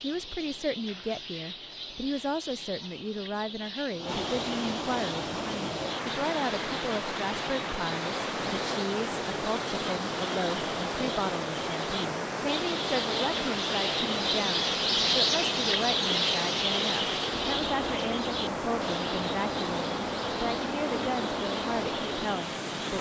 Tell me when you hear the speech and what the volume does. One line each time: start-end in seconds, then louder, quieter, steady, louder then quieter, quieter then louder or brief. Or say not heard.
0.0-22.9 steady.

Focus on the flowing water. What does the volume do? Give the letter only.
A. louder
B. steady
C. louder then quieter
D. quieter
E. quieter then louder
A.